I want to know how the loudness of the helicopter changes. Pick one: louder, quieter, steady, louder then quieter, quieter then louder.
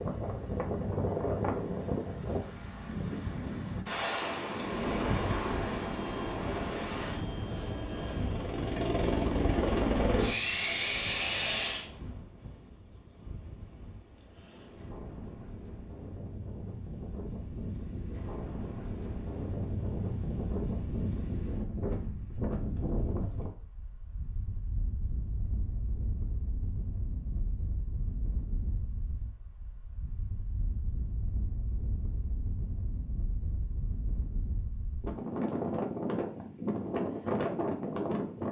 louder.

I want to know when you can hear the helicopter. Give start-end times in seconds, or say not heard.
4.8-11.8.